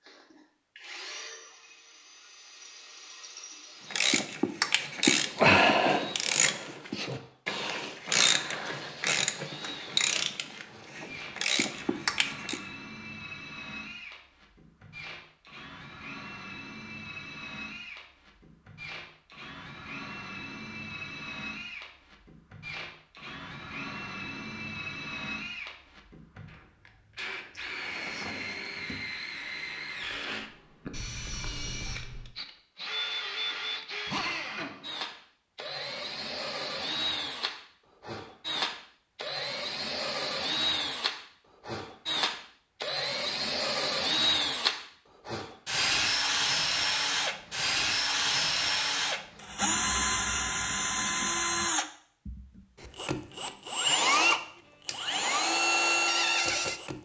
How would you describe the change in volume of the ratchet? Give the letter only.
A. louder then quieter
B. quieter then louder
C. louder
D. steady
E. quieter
E.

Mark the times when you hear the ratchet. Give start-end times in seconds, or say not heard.
3.9-12.6.